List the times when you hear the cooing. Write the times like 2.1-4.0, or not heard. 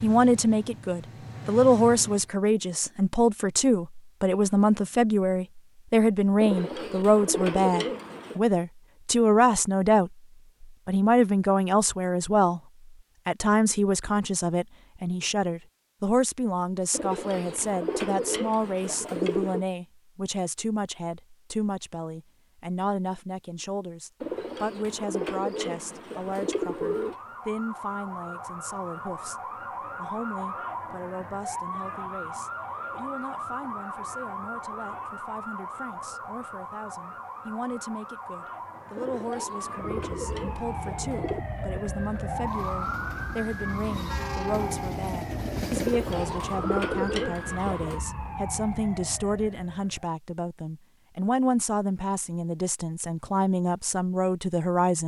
6.4-8.4, 16.9-19.6, 24.2-27.1, 39.0-41.4, 45.8-48.0.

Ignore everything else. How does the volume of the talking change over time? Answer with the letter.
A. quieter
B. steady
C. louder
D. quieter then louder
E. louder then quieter
D.